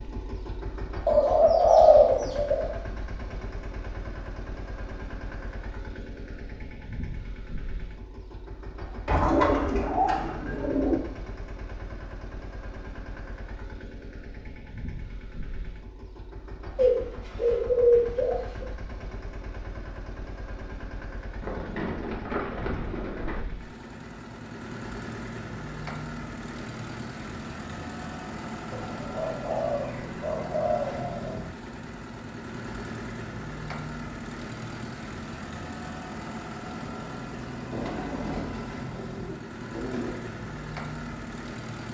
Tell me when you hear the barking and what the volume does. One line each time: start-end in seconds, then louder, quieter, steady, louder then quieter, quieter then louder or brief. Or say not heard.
not heard.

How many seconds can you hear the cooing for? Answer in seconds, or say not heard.
13 s.